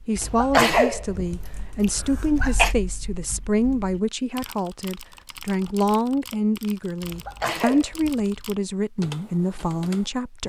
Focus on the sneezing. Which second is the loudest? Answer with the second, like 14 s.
1 s.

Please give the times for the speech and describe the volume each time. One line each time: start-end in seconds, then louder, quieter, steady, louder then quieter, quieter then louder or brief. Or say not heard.
0.1-10.4 steady.